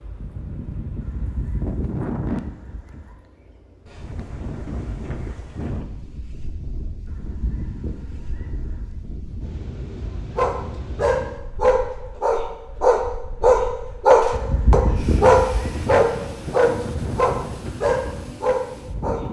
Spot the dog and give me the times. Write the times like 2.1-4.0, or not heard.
10.3-19.2.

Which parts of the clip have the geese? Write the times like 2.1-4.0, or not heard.
1.0-3.1, 7.0-8.9, 14.3-15.8.